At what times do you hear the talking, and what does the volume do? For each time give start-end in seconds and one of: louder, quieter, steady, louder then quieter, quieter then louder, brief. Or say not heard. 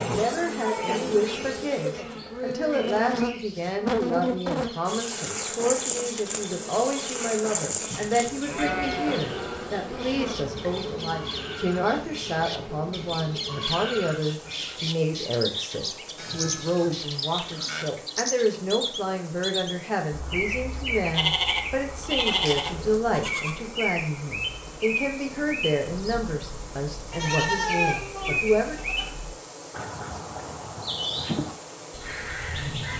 0.0-28.8 steady.